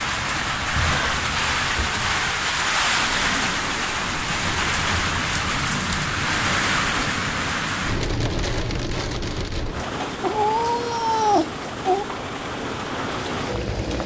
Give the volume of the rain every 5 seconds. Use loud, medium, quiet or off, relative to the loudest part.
loud, loud, medium.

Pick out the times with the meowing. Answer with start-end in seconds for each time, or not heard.
10.2-12.1.